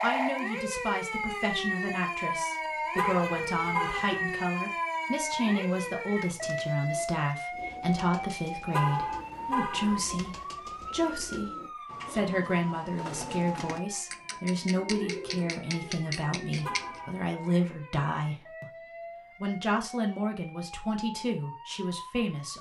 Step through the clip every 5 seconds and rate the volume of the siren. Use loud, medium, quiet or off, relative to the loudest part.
loud, loud, medium, quiet, quiet.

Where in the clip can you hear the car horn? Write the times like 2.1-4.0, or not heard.
3.0-4.2, 8.7-10.0, 16.6-17.2.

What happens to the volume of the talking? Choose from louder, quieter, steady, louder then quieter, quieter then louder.
steady.